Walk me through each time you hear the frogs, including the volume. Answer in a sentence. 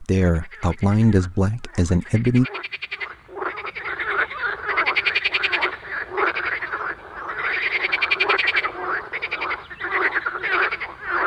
The frogs can be heard from 0.1 to 11.2 s, getting louder.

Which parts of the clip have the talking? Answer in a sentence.
The talking can be heard from 0.0 to 2.5 s.